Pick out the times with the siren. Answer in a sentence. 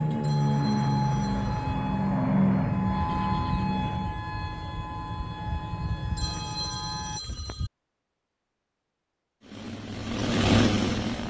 The siren can be heard from 0.0 to 7.2 s.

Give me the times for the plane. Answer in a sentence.
You can hear the plane from 0.0 to 4.2 s and from 9.4 to 11.2 s.